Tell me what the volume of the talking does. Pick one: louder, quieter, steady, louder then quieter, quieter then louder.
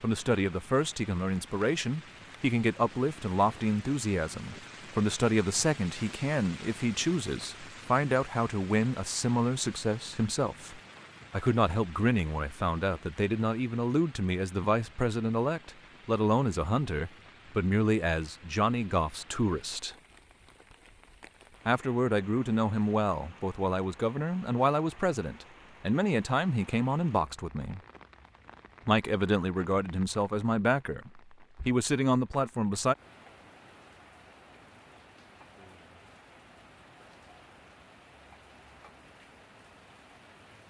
steady.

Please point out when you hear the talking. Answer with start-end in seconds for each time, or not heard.
0.0-19.9, 21.6-27.8, 28.9-33.0.